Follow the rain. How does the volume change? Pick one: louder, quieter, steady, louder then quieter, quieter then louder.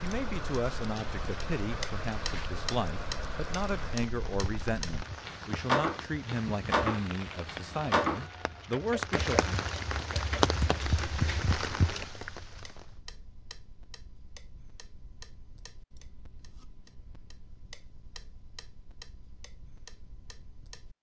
louder.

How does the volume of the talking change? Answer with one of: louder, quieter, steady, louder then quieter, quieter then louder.
steady.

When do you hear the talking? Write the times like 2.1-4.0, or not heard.
0.0-9.6.